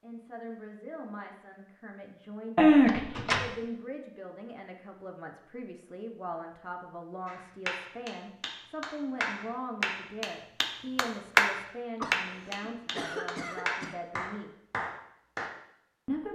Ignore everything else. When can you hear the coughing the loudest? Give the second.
3 s.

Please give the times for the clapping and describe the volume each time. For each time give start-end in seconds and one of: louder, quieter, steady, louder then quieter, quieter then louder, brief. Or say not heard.
7.2-15.5 louder then quieter.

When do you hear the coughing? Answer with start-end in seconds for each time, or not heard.
2.5-3.5, 12.0-13.9.